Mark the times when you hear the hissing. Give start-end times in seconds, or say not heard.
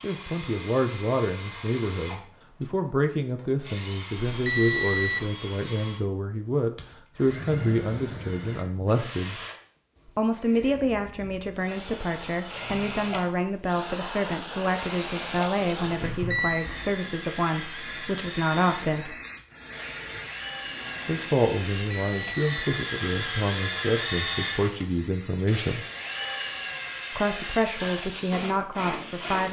11.4-29.4.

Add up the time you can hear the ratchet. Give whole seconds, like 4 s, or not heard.
not heard.